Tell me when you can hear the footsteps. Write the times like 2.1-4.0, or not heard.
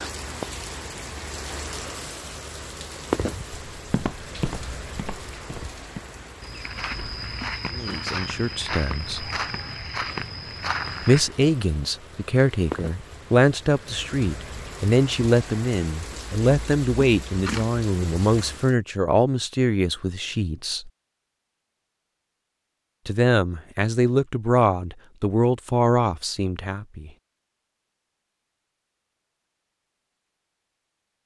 3.7-11.2.